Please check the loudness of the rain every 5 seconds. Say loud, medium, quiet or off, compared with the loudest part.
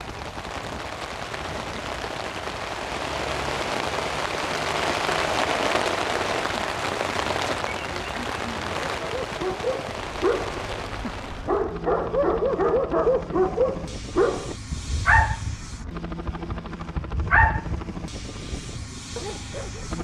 loud, loud, medium, off.